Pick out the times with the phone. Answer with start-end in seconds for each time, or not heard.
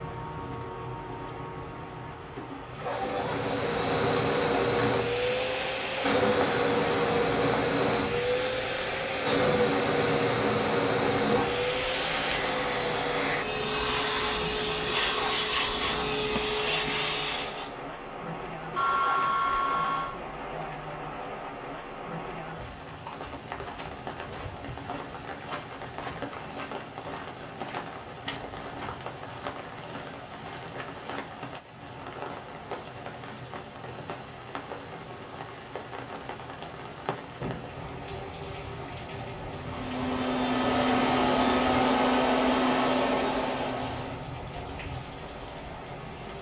18.8-20.2.